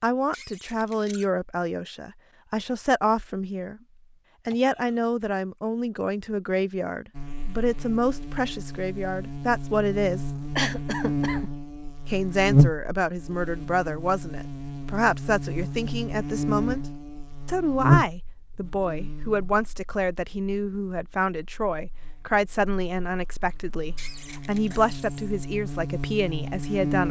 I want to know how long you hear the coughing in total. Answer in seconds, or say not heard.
2 s.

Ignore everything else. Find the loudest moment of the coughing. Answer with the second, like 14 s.
11 s.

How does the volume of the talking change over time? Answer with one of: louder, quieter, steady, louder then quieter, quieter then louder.
steady.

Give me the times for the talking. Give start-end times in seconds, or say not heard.
0.0-3.8, 4.5-10.3, 12.1-16.9, 17.4-27.0.